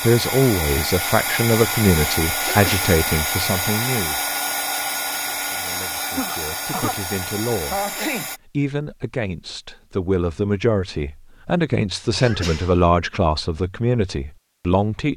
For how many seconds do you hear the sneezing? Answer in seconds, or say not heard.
3 s.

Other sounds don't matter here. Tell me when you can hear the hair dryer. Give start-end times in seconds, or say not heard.
0.0-8.4.